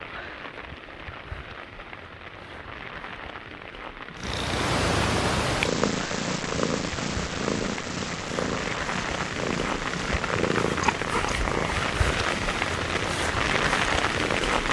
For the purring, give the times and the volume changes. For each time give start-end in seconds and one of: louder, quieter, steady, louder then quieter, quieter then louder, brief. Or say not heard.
4.2-14.6 quieter.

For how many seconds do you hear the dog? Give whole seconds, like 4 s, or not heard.
not heard.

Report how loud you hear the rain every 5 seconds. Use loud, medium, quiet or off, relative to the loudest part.
quiet, medium, loud.